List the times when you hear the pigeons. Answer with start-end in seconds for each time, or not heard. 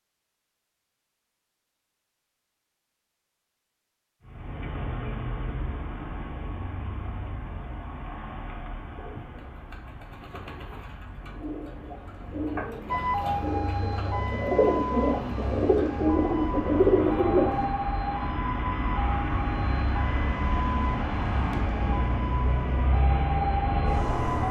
8.9-17.6.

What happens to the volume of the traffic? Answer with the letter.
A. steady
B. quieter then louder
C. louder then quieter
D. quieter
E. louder
B.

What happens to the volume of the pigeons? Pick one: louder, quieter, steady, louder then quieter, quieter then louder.
louder.